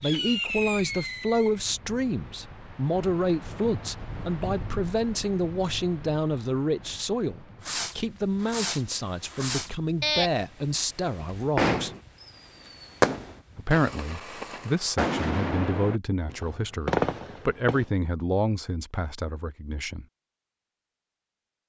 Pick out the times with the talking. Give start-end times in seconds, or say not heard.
0.0-11.9, 13.6-20.1.